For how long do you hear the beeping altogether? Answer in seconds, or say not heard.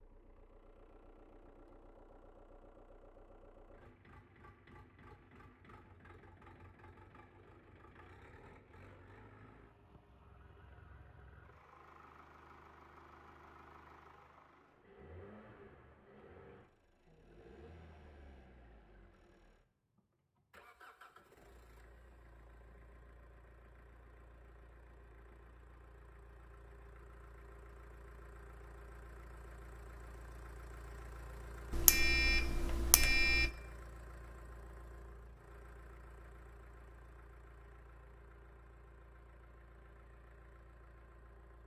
2 s.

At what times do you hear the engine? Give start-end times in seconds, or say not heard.
0.0-41.6.